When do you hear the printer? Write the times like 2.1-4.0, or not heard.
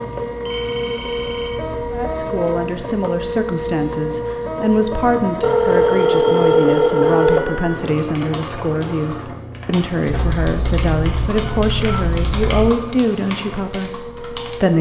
0.0-14.7.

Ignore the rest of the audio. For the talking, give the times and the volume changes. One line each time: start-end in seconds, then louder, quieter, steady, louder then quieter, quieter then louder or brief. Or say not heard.
1.9-14.7 steady.